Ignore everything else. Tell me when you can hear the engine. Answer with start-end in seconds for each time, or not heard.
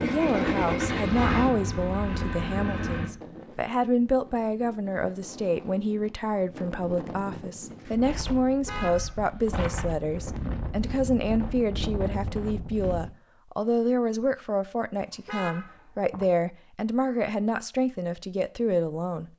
0.0-3.1.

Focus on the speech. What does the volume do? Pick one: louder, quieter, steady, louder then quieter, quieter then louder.
steady.